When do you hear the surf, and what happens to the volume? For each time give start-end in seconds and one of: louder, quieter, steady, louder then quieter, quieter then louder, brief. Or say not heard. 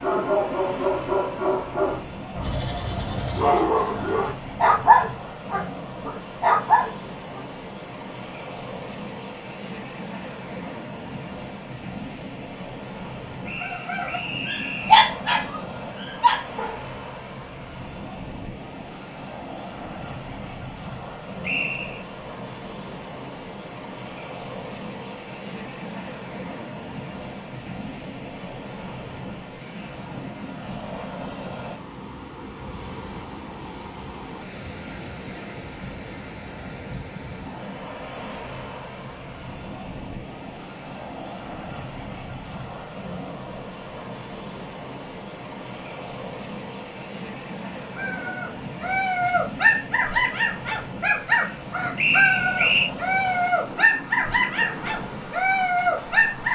0.0-56.5 steady.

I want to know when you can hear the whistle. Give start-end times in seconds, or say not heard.
13.4-14.9, 21.4-22.1, 52.0-52.9.